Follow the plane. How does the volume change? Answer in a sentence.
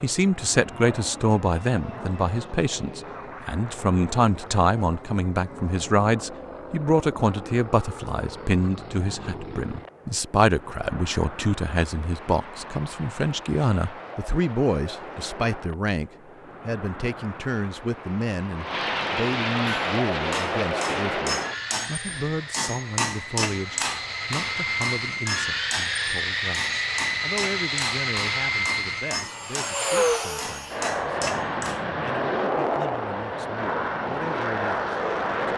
The volume of the plane goes up.